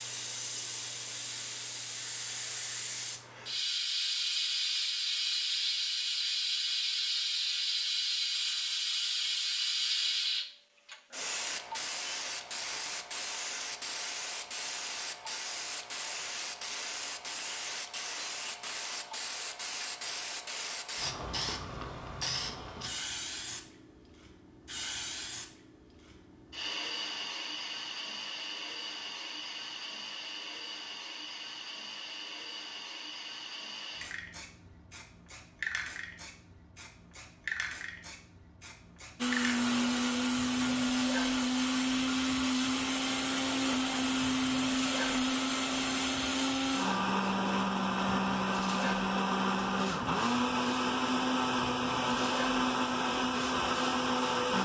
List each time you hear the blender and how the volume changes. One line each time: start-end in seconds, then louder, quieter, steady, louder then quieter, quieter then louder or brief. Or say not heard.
39.1-54.5 steady.